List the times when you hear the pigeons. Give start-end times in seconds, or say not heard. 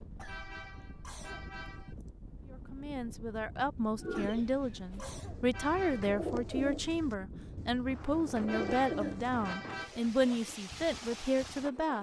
4.0-10.6.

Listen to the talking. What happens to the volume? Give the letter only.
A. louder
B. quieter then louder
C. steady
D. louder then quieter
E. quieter
C.